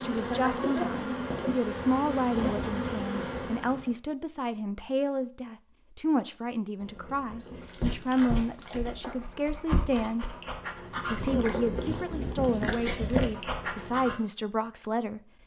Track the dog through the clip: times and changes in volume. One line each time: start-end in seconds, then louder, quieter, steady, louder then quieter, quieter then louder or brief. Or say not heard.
6.8-14.2 louder.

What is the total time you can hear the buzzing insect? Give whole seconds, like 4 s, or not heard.
4 s.